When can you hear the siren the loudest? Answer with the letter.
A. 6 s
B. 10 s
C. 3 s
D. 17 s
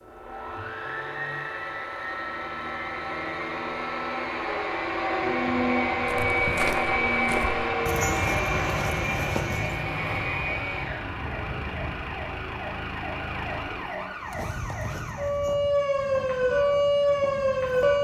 D.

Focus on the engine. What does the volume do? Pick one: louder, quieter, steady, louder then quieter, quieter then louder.
louder then quieter.